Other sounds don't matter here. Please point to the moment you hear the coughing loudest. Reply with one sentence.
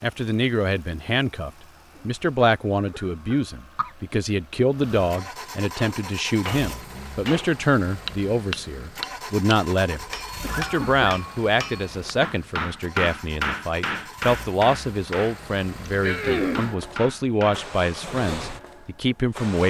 The volume of the coughing peaks at 16 seconds.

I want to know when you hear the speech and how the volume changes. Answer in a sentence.
The speech can be heard from 0.0 to 19.6 s, at a steady volume.